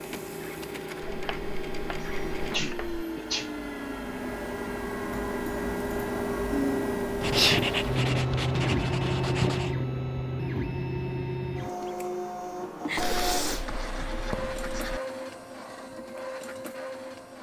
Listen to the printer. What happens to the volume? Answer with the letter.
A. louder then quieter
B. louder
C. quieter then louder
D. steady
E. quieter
A.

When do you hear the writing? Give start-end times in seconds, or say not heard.
1.0-3.0, 7.2-9.8, 12.9-15.0.